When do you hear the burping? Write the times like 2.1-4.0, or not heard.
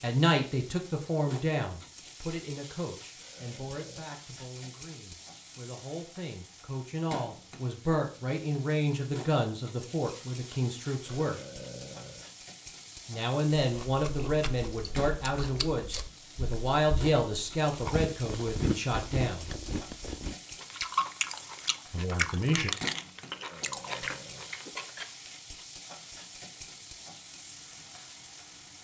3.2-4.0, 11.1-12.3, 23.3-24.6.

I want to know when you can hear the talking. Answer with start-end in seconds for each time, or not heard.
0.0-11.4, 13.1-19.5, 21.9-22.7.